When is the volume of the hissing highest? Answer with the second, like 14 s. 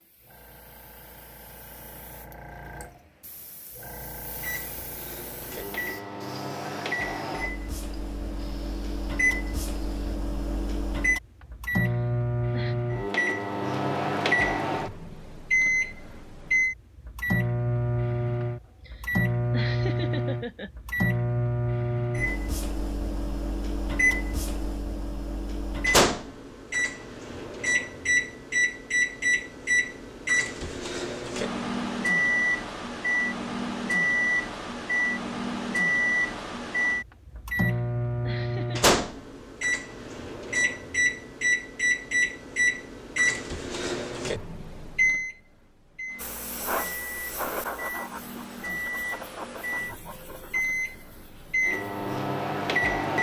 47 s.